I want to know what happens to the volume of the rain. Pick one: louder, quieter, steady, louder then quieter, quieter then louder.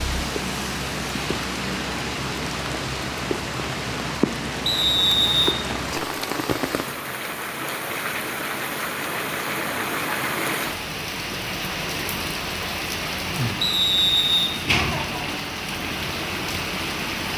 steady.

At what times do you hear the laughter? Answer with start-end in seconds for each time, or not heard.
14.7-15.4.